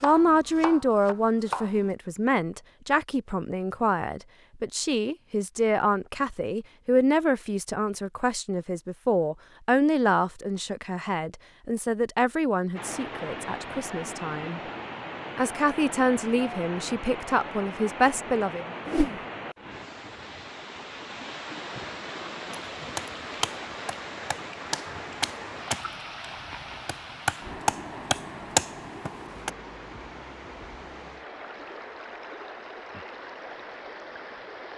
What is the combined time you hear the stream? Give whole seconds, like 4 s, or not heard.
22 s.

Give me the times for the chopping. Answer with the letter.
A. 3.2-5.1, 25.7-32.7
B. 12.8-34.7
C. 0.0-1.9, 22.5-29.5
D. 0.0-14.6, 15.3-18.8
C.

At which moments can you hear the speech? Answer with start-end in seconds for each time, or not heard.
0.0-14.6, 15.3-18.8.